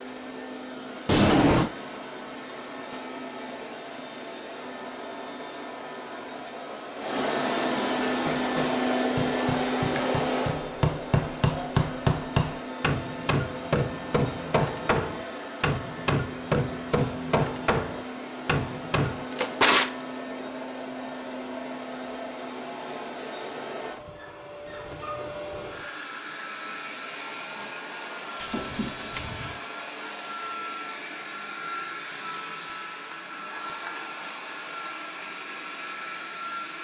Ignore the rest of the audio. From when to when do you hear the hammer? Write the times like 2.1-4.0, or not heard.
8.1-19.2.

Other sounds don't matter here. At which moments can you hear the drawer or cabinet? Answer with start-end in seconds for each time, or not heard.
1.1-1.7, 19.1-19.9, 28.4-29.6.